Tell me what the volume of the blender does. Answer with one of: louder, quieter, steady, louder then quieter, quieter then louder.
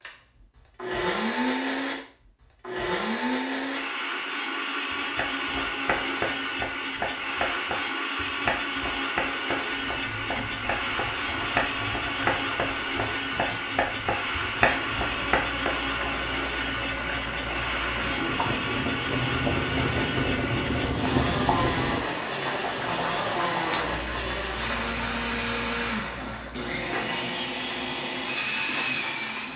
steady.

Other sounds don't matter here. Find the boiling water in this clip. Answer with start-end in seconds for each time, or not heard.
9.8-29.5.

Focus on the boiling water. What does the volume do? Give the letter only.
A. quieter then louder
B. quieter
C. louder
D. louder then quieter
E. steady
D.